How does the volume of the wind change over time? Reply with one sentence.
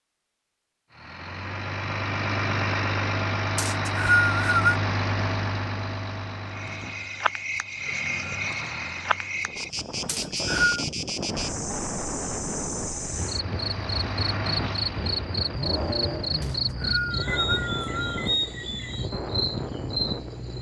The volume of the wind stays about the same.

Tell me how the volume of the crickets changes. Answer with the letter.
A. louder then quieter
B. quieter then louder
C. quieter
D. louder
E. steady
E.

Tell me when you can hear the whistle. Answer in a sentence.
You can hear the whistle from 3.5 to 4.8 s, from 10.1 to 10.8 s and from 16.4 to 18.3 s.